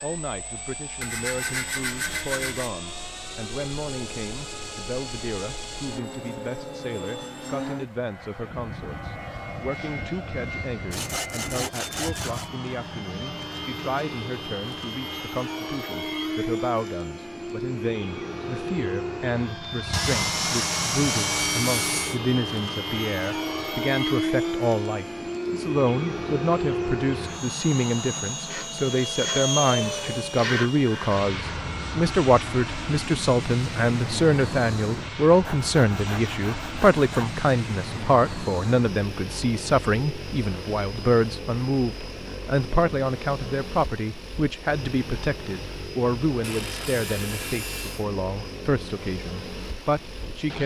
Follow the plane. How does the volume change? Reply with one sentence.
The loudness of the plane goes up, then down.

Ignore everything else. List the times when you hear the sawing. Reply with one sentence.
The sawing can be heard from 1.0 to 2.7 s, from 10.9 to 12.5 s, from 19.9 to 22.2 s, from 28.4 to 31.3 s, from 35.4 to 37.4 s and from 46.4 to 48.0 s.